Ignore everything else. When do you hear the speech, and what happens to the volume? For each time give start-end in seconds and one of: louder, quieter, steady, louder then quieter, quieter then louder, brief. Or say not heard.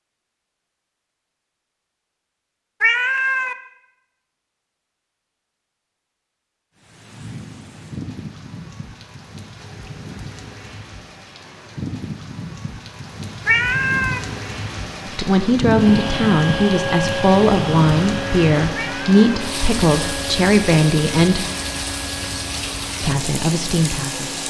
15.1-21.4 steady
23.0-24.4 brief.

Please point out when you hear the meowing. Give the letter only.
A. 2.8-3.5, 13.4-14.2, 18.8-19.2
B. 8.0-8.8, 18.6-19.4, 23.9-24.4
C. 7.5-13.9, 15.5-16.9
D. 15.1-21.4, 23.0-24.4
A.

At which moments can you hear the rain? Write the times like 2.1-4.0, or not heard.
6.8-24.4.